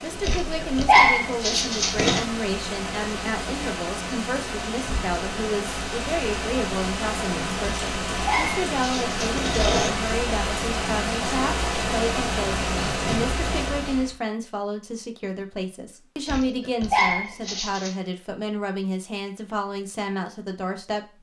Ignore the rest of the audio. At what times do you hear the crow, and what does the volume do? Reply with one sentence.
The crow can't be heard in this clip.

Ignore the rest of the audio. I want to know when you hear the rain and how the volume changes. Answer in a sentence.
The rain can be heard from 0.0 to 14.2 s, getting louder.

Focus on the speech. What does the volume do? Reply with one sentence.
The volume of the speech stays about the same.